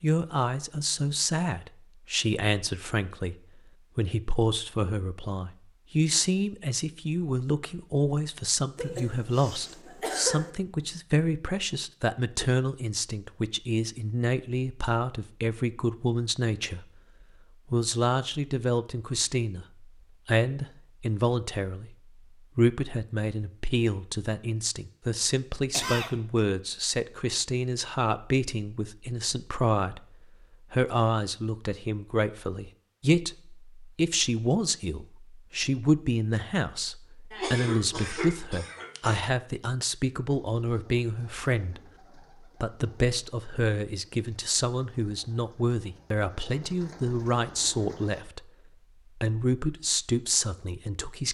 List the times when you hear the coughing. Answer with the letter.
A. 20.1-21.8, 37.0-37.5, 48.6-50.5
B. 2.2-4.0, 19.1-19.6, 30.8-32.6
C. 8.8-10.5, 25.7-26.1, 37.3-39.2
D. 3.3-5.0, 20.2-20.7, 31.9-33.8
C.